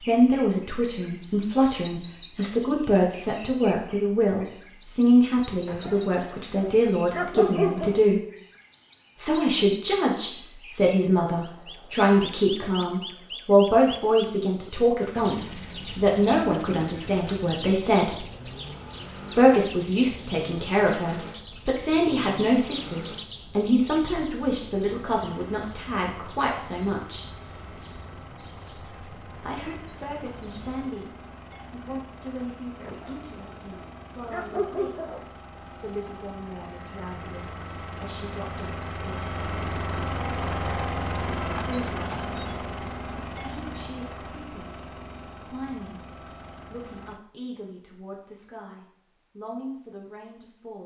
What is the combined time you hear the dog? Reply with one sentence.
The dog can be heard for 5 seconds in total.